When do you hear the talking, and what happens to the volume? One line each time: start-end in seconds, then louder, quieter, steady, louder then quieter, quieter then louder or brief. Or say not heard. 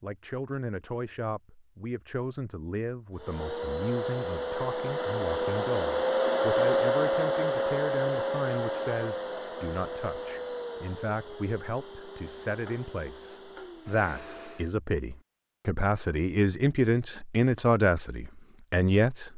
0.0-19.3 louder.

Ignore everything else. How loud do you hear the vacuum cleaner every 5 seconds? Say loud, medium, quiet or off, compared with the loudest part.
medium, loud, quiet, off.